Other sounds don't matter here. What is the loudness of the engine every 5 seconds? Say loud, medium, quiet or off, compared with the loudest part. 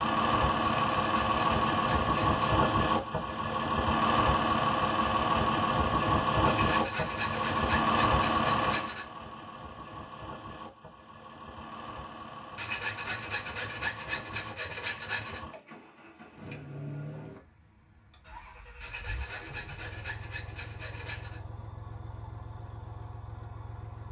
loud, loud, quiet, quiet, quiet.